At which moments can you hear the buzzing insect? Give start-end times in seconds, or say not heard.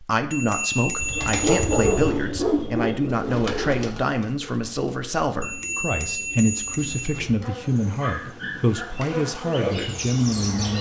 7.3-10.7.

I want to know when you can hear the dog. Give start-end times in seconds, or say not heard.
1.0-3.1, 7.9-8.8.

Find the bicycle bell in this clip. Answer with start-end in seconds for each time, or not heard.
0.3-2.1, 5.4-7.2.